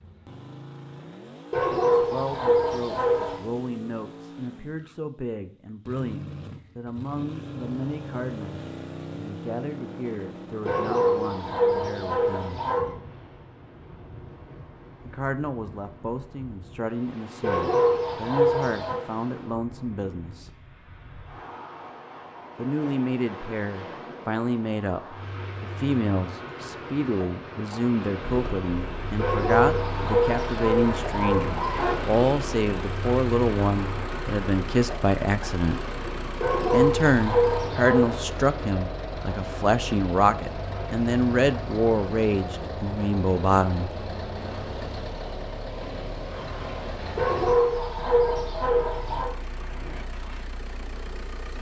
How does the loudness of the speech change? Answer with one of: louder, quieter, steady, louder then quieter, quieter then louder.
louder.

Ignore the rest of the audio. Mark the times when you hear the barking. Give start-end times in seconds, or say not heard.
1.5-3.5, 10.7-12.9, 17.4-19.1, 29.1-32.0, 36.4-38.2, 47.1-49.4.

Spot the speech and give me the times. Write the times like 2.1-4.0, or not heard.
1.9-12.6, 15.1-20.5, 22.6-35.9, 36.7-43.9.